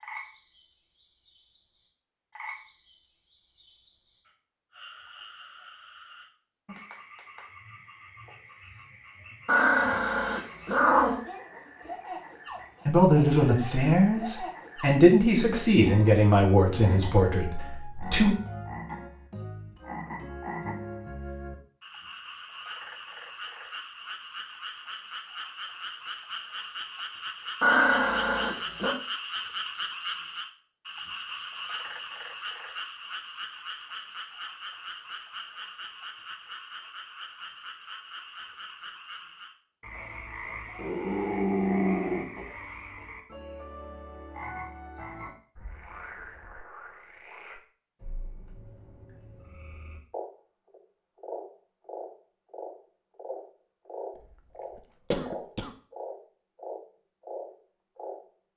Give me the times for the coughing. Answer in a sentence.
You can hear the coughing from 54.1 to 55.8 s.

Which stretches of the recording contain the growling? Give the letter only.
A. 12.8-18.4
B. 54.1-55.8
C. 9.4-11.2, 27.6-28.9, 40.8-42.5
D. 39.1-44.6
C.